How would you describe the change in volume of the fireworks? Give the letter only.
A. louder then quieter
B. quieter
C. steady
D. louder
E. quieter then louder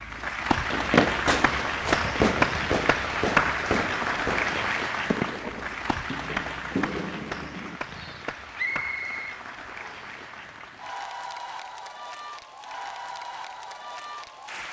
B.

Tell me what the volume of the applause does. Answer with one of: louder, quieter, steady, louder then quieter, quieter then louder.
quieter.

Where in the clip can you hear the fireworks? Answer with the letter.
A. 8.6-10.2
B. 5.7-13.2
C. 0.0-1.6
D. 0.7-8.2
D.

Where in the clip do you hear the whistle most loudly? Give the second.
9 s.